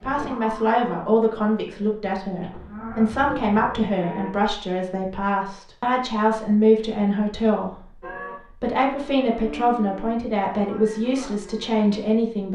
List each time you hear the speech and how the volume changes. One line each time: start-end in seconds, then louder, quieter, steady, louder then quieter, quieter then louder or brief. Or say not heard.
0.0-12.4 steady.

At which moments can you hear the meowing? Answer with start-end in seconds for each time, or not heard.
not heard.